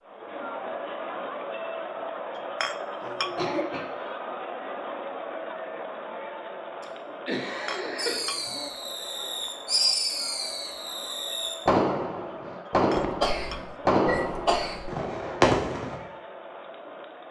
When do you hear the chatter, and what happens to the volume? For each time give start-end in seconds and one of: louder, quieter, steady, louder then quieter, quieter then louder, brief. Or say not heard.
0.0-17.2 quieter.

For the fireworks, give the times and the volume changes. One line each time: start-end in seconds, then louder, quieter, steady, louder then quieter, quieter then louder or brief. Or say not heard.
8.0-16.0 louder.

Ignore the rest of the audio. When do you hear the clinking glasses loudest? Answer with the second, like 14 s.
3 s.